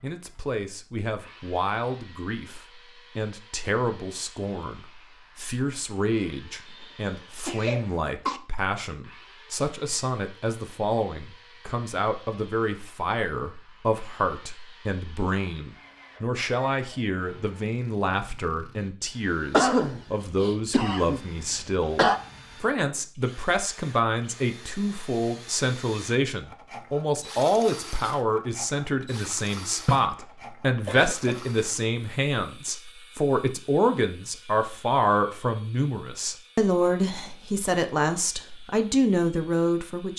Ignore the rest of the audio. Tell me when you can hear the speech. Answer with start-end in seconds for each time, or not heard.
0.0-40.1.